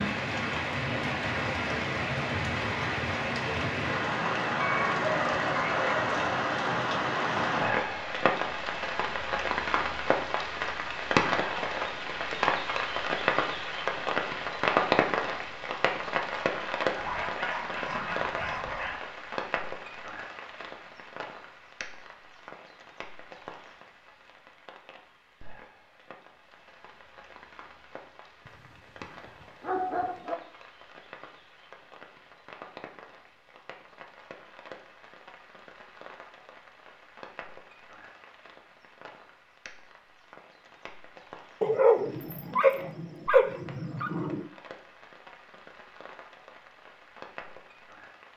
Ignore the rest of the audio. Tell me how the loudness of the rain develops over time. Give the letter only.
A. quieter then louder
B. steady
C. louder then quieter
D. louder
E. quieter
E.